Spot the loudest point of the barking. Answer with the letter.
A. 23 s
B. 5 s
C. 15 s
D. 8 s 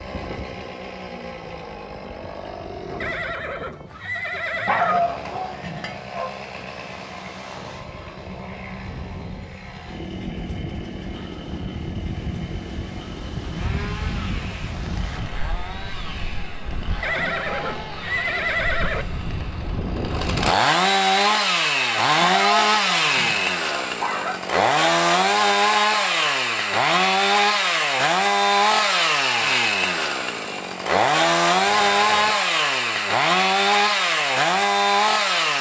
B.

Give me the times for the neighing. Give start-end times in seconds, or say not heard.
3.0-5.0, 17.0-19.1, 31.6-32.4.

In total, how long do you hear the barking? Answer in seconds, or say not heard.
4 s.